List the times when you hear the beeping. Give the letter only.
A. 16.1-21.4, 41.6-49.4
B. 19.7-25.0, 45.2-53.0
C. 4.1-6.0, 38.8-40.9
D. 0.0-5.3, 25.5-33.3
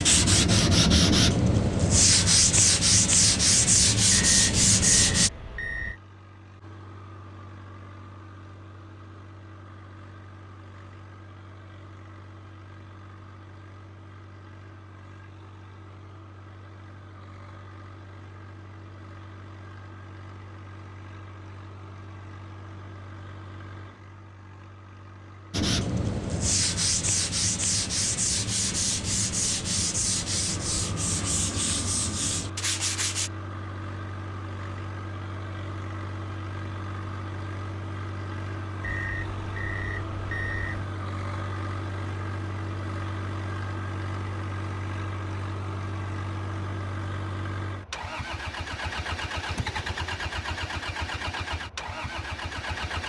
C.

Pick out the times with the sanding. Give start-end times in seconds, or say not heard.
0.0-5.3, 25.5-33.3.